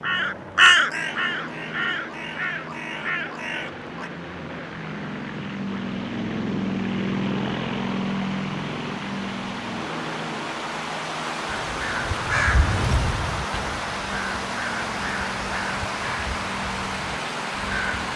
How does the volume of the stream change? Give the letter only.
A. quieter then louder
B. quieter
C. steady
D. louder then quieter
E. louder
E.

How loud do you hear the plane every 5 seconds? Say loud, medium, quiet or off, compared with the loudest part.
medium, loud, medium, medium.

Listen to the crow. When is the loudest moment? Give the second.
1 s.